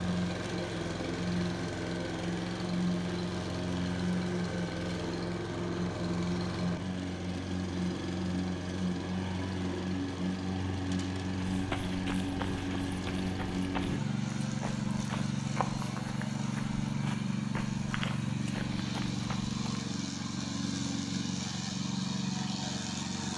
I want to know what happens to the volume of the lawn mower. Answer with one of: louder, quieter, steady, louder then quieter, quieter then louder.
steady.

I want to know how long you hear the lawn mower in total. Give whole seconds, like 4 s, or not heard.
23 s.